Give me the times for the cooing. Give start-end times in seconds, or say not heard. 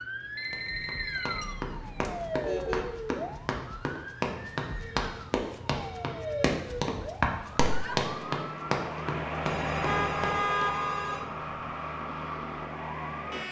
not heard.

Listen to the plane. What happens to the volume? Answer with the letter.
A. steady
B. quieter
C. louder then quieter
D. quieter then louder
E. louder
B.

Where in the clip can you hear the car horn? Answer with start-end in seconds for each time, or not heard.
1.4-3.0, 9.8-11.2.